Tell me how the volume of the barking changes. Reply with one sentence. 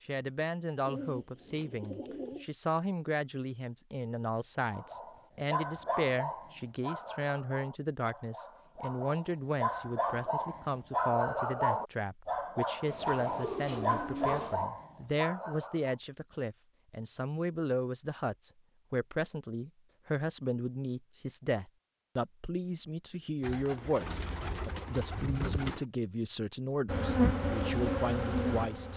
The loudness of the barking goes down, then up.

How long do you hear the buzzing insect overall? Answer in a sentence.
The buzzing insect can be heard for 2 seconds in total.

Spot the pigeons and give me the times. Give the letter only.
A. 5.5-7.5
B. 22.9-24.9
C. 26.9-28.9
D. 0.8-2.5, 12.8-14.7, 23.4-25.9
D.